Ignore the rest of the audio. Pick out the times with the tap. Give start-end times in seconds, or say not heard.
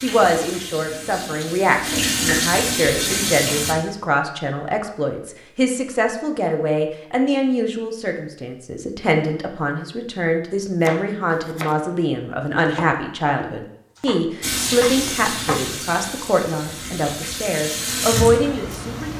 0.0-3.8, 14.4-19.1.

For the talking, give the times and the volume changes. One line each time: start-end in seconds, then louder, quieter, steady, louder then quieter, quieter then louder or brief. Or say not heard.
0.0-19.1 steady.